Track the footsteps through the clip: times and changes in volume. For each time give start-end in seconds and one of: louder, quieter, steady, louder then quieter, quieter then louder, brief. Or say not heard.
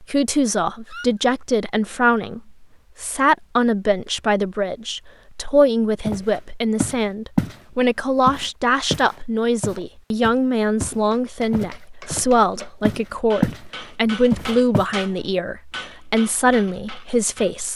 6.0-7.5 brief
8.2-12.2 quieter then louder
12.8-13.6 brief
14.3-14.8 brief.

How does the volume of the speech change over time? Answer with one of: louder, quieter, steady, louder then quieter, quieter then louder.
steady.